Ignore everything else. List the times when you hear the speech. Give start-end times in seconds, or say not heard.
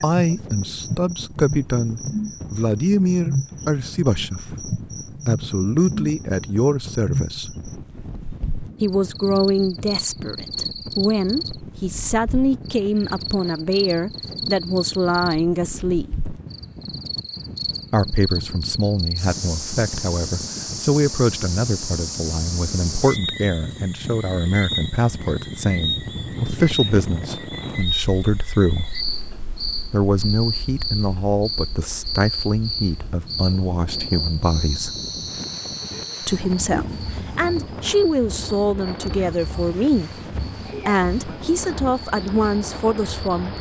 0.0-7.5, 8.8-16.2, 17.9-28.9, 29.9-35.0, 36.2-40.1, 40.9-43.5.